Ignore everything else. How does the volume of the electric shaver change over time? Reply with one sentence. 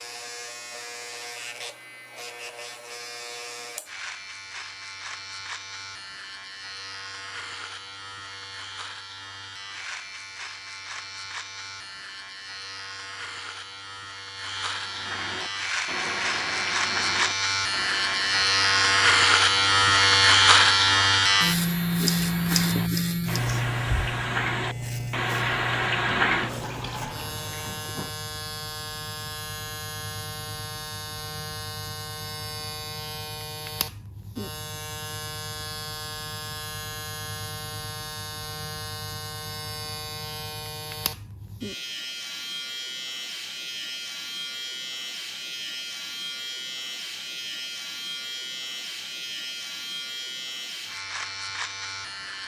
The volume of the electric shaver goes up, then down.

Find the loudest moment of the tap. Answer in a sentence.
The volume of the tap peaks at 26 seconds.